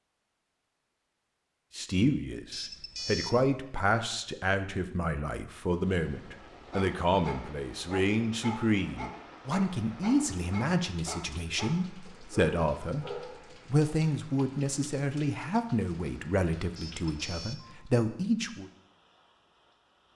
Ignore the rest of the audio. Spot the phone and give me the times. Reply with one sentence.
The phone can be heard from 2.5 to 3.6 s and from 16.8 to 17.9 s.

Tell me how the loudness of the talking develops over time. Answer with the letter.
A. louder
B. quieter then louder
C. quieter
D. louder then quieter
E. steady
E.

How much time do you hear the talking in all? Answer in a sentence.
You can hear the talking for 16 seconds altogether.